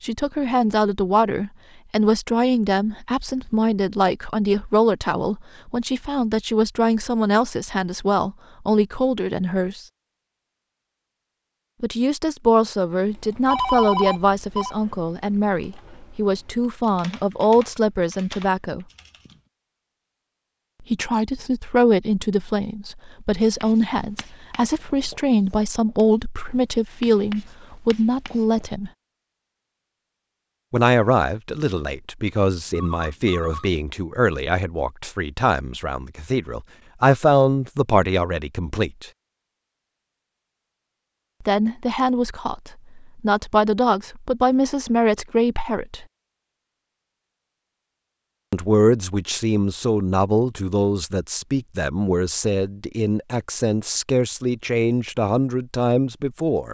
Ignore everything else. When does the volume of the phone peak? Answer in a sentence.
The loudest moment of the phone is at 14 seconds.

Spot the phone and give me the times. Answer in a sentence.
The phone can be heard from 13.4 to 14.8 s and from 32.5 to 33.7 s.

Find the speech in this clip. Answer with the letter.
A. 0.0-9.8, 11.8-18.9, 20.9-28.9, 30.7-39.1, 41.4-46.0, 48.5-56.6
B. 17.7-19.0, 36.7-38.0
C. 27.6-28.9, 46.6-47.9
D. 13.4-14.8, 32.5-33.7
A.